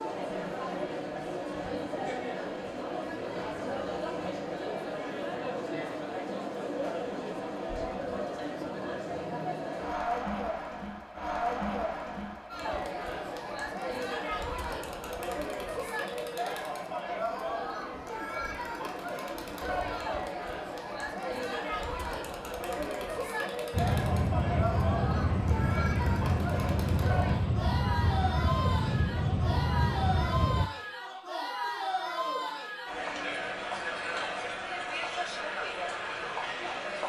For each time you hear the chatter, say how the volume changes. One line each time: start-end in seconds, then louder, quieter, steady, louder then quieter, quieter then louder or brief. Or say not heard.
0.0-37.0 steady.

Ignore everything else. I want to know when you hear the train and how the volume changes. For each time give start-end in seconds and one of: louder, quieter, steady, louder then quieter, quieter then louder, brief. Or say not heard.
23.7-30.7 steady.